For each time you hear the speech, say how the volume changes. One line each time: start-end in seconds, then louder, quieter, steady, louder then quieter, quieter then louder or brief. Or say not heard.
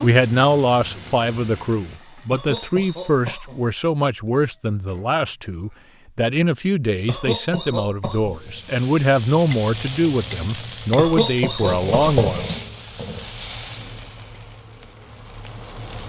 0.0-12.6 steady.